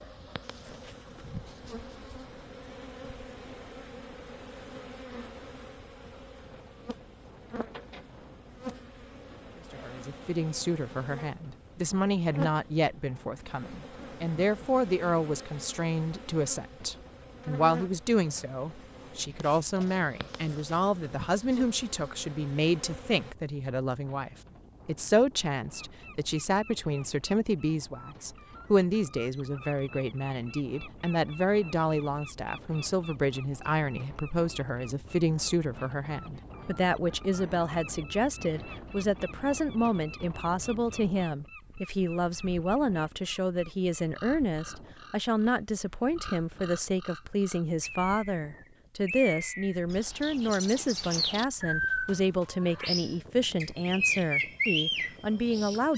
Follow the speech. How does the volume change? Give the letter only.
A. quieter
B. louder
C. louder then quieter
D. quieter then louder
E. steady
E.